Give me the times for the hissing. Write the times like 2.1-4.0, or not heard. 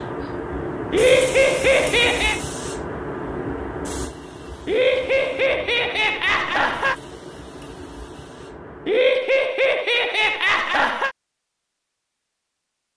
0.0-9.1.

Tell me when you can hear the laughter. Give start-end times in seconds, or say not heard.
0.9-2.4, 4.7-7.0, 8.8-11.2.